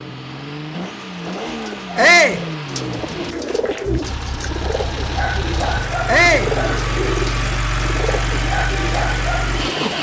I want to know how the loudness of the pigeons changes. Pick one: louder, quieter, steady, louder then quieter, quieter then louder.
louder.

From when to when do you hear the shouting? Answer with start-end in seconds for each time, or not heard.
1.9-2.4, 6.0-6.5.